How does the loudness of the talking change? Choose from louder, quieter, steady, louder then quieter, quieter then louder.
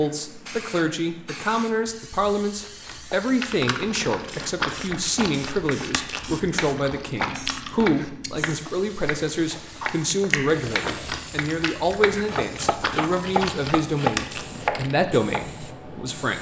steady.